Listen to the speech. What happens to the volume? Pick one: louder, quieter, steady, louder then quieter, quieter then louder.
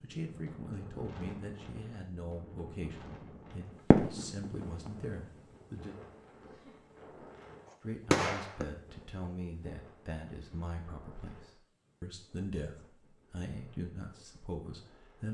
steady.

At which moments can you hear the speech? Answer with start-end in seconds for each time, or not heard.
0.0-6.0, 7.8-15.2.